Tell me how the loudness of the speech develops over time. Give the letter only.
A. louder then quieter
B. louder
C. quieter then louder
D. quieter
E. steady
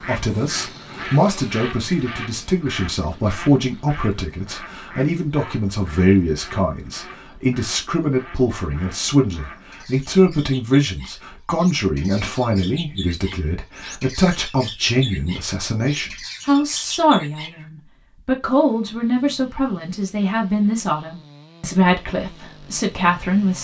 E.